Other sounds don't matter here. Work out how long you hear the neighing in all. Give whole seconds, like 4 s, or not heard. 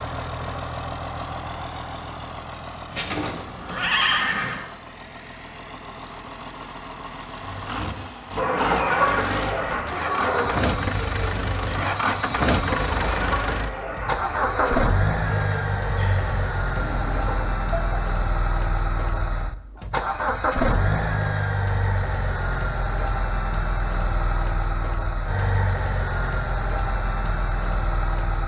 2 s.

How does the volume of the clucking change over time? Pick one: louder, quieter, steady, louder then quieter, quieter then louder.
quieter.